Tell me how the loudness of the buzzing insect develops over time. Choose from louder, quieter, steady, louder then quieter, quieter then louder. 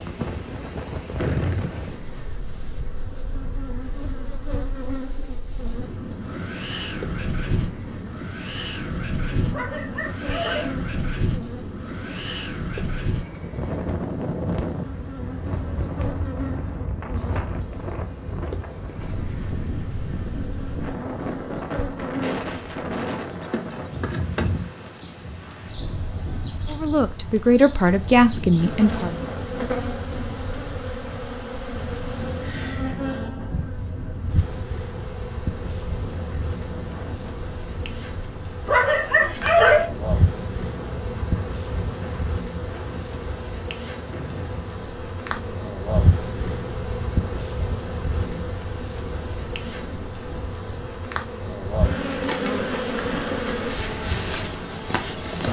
louder.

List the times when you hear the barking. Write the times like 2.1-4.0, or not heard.
9.5-10.7, 38.6-39.9.